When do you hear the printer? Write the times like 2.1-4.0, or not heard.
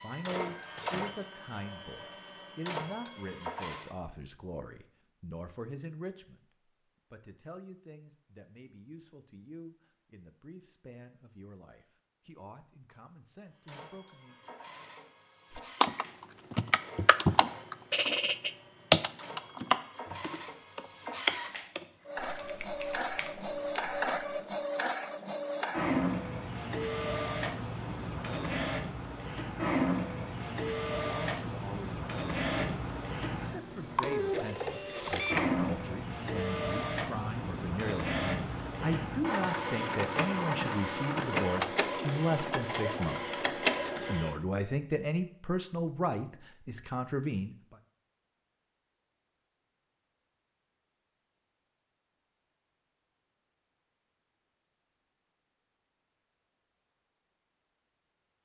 0.0-4.0, 13.5-44.4.